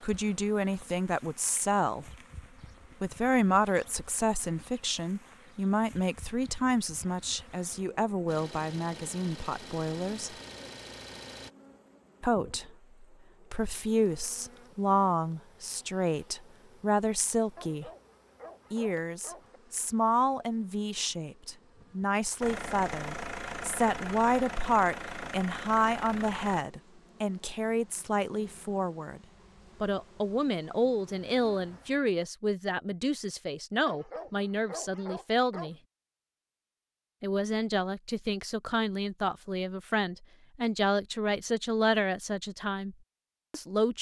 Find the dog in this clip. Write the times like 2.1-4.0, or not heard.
17.6-19.6, 33.9-35.7.